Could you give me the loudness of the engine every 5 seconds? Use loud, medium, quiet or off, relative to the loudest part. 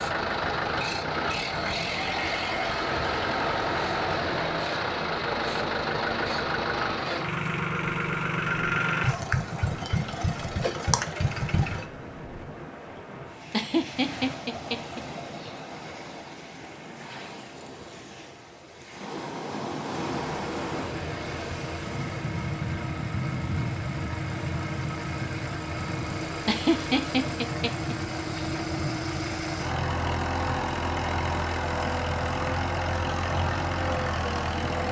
loud, loud, loud, off, medium, medium, loud.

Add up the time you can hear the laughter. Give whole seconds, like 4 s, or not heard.
4 s.